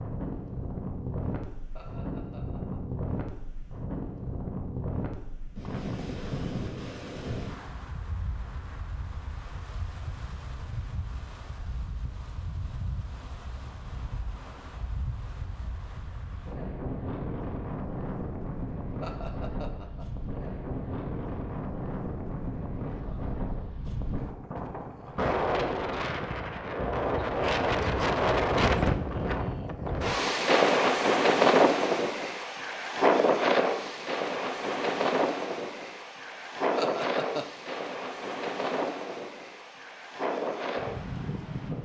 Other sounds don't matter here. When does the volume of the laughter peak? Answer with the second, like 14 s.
37 s.